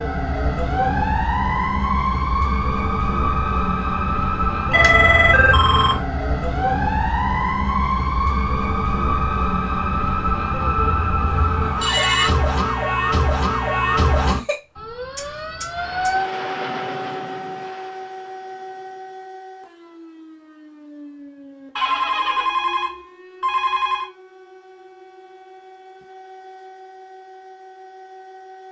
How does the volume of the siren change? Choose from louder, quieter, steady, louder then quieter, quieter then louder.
quieter.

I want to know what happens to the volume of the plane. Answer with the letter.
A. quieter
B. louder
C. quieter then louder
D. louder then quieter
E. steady
D.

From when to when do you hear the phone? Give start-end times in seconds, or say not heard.
4.7-6.0, 11.2-12.3, 21.8-24.1.